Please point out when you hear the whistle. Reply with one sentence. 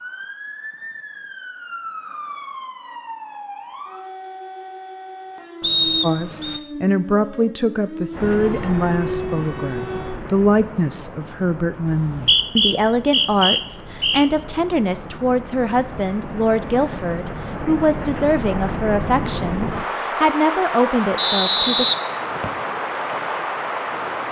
You can hear the whistle from 5.6 to 6.6 s, from 11.8 to 14.2 s and from 21.1 to 22.5 s.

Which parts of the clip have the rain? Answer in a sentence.
You can hear the rain from 8.1 to 24.2 s.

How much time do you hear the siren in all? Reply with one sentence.
The siren can be heard for 10 seconds in total.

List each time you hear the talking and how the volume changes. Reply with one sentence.
You can hear the talking from 6.0 to 21.9 s, at a steady volume.